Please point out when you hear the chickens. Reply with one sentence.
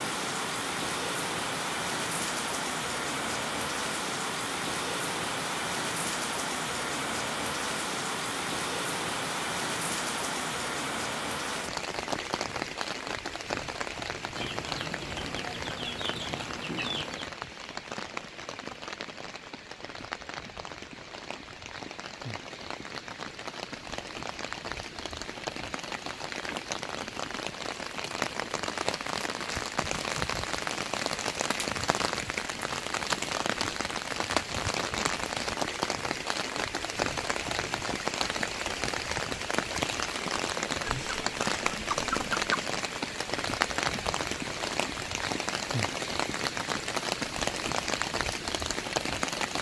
The chickens can be heard from 14.3 to 17.3 s and from 40.8 to 42.5 s.